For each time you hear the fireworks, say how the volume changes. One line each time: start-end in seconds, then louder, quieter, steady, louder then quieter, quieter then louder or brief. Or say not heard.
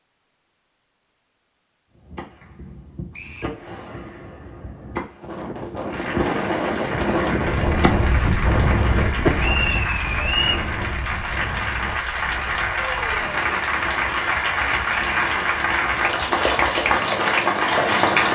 2.0-9.6 louder.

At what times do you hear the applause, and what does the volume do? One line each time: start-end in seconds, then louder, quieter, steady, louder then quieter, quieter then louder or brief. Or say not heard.
5.8-18.2 louder.